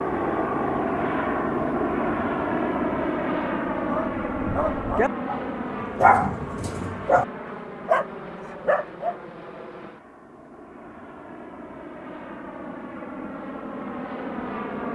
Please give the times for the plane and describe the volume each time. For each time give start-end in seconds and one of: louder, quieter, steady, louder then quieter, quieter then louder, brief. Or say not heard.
0.0-14.8 quieter then louder.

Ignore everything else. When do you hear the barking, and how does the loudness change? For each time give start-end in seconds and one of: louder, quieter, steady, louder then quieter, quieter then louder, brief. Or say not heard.
3.9-9.2 louder.